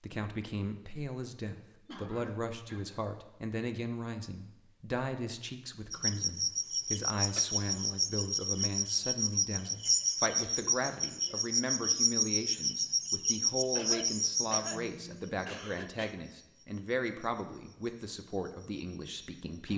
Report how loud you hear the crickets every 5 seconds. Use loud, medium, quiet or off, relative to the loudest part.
off, loud, loud, quiet.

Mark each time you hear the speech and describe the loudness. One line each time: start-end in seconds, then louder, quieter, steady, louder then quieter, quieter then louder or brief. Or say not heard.
0.0-19.7 steady.